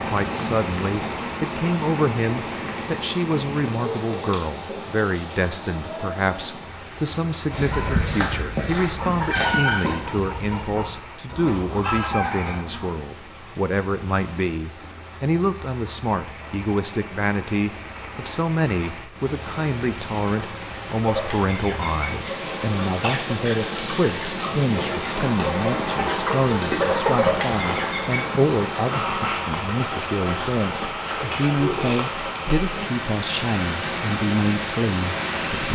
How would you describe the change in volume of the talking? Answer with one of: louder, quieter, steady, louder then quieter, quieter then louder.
steady.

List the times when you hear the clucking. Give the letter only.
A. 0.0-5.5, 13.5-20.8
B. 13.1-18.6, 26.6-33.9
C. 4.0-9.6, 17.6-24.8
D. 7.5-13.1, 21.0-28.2
D.